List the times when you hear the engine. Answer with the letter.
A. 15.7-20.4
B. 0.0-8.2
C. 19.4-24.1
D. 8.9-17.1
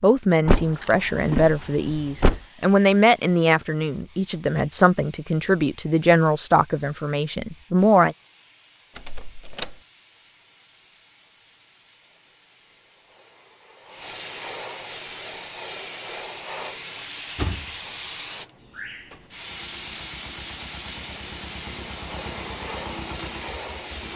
C.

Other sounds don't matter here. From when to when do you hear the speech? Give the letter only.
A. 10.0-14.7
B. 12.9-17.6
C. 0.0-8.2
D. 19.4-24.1
C.